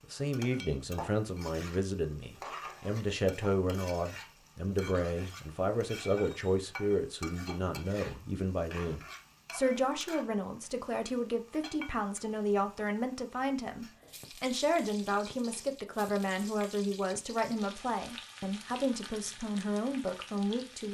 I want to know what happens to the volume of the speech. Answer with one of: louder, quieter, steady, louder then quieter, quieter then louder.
steady.